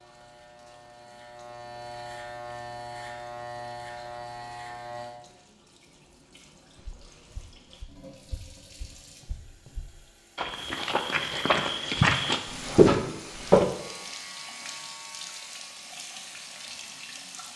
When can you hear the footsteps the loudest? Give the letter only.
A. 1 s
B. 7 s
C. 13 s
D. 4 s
C.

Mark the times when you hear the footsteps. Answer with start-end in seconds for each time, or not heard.
6.8-13.7.